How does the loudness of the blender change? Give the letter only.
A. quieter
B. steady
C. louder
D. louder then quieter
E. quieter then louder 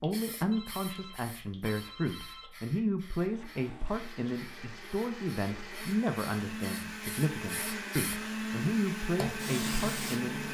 C.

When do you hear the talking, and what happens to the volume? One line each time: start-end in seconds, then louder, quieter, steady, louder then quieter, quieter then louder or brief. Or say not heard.
0.0-10.4 steady.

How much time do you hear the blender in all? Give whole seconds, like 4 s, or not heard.
7 s.